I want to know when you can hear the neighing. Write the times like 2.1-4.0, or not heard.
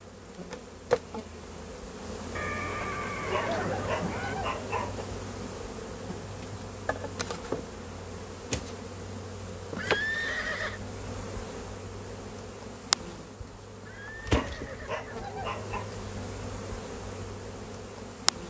2.4-4.3, 9.7-10.8, 13.8-15.3.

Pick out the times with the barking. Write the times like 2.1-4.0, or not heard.
3.2-5.0, 14.2-15.8.